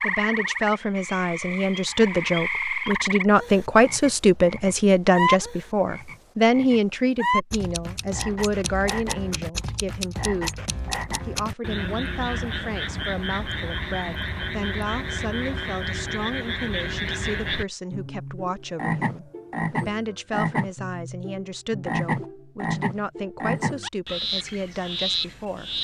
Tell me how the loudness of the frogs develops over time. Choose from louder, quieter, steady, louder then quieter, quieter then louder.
steady.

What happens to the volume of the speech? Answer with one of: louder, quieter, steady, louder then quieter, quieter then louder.
quieter.